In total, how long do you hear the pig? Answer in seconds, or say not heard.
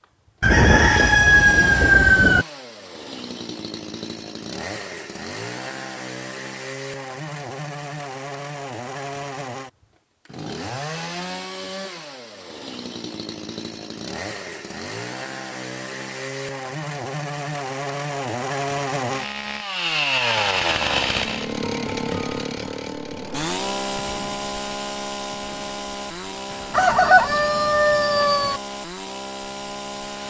not heard.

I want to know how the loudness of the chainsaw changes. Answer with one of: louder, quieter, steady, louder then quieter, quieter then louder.
louder then quieter.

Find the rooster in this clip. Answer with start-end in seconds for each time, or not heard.
0.4-2.5, 26.7-28.6.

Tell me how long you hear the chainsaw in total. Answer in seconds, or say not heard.
30 s.